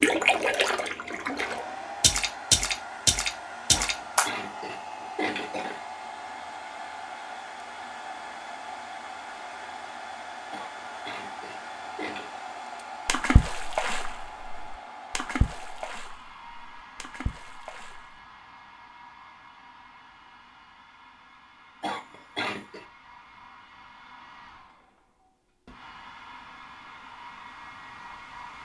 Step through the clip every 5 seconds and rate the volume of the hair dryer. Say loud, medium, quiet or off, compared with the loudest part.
loud, loud, loud, medium, quiet, medium.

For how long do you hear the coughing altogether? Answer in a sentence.
You can hear the coughing for 5 seconds altogether.